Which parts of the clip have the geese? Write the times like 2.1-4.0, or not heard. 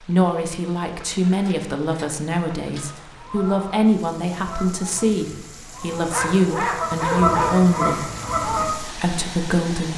2.8-8.7.